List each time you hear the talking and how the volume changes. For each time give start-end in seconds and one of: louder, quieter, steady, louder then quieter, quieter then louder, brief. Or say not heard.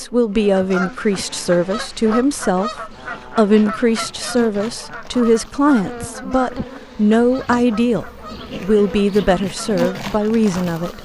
0.0-11.0 steady.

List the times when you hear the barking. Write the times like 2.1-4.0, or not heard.
not heard.